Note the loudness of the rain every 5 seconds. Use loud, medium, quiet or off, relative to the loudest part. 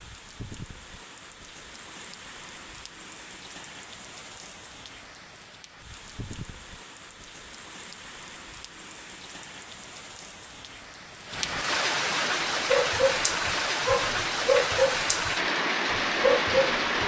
quiet, quiet, loud, loud.